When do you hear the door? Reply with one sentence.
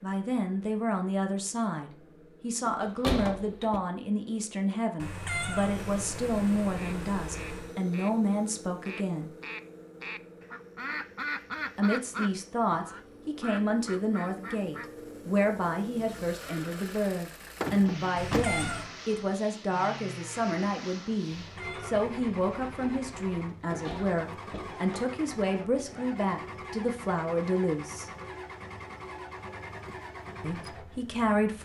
You can hear the door from 2.6 to 3.8 s, from 17.6 to 18.4 s and from 23.6 to 25.1 s.